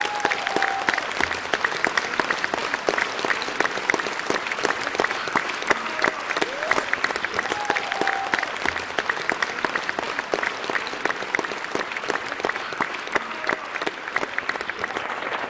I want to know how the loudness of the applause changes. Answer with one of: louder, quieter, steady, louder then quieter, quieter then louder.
steady.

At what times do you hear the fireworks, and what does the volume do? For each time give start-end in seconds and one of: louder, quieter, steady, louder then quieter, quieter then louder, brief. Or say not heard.
not heard.